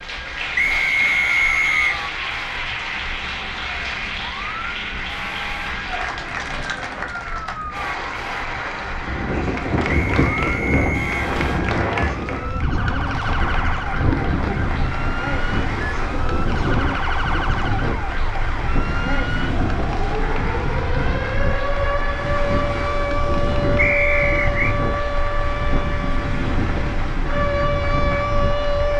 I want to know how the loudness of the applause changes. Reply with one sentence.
The loudness of the applause goes down.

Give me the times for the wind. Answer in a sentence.
You can hear the wind from 8.9 to 28.9 s.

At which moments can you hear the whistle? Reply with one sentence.
You can hear the whistle from 0.6 to 1.9 s, from 9.8 to 11.2 s and from 23.8 to 24.8 s.